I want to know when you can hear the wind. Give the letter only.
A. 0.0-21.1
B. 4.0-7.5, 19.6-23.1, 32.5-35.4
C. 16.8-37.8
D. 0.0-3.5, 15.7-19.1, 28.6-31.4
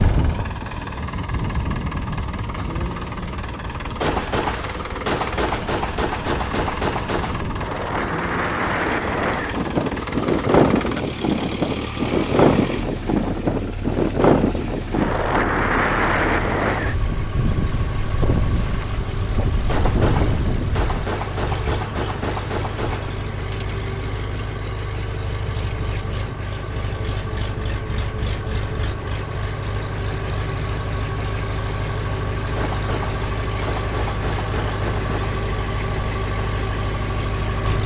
A.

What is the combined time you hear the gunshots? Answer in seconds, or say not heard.
10 s.